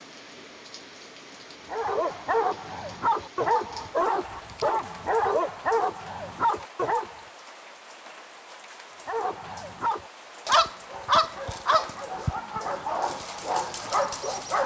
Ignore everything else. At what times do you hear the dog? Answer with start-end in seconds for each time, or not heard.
1.7-7.2, 9.1-14.6.